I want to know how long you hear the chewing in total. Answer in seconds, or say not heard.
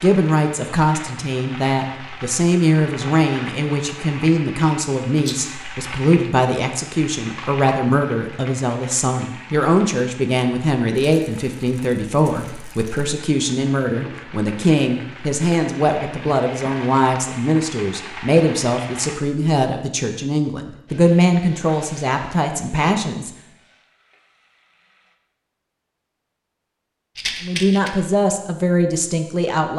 not heard.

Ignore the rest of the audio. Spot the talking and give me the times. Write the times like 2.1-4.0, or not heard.
0.0-23.3, 27.4-29.7.